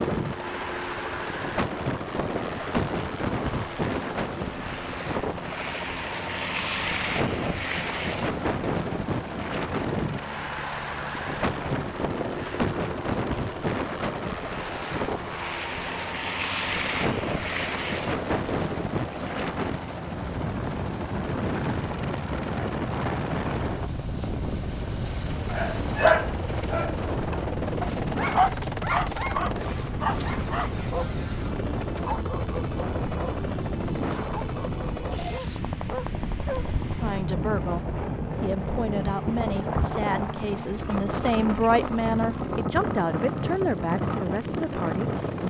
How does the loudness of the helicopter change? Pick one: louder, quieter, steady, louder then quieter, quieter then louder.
steady.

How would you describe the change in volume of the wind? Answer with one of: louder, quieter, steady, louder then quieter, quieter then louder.
steady.